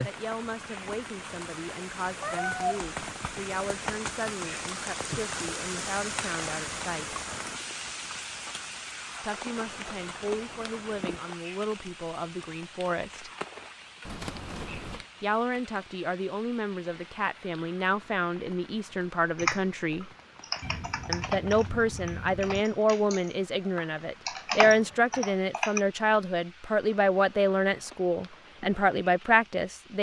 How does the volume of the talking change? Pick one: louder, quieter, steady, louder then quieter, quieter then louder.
louder.